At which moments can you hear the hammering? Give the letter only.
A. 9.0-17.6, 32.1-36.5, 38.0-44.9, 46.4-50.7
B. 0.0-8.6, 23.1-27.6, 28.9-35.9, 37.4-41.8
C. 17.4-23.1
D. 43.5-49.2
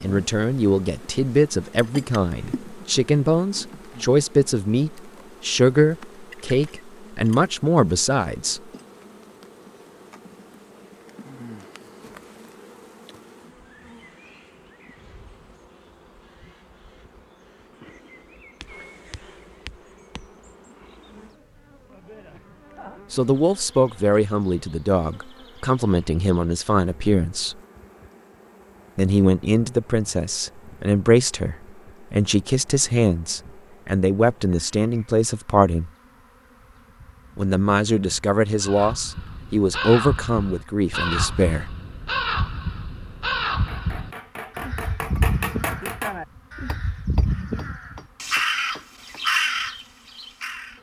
D.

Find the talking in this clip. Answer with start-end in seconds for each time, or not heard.
0.0-8.6, 23.1-27.6, 28.9-35.9, 37.4-41.8.